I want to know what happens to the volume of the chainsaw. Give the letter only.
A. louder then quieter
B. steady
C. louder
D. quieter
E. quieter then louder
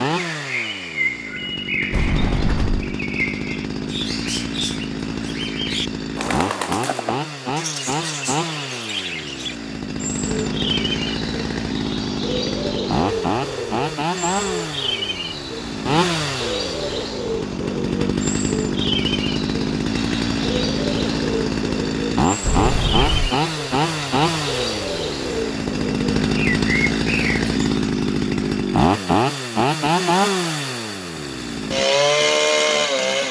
C.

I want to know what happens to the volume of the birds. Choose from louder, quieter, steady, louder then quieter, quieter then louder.
steady.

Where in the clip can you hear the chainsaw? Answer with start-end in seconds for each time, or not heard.
0.0-33.2.